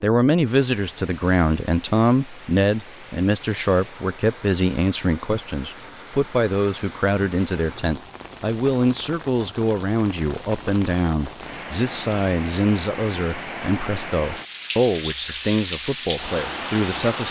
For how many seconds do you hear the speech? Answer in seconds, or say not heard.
17 s.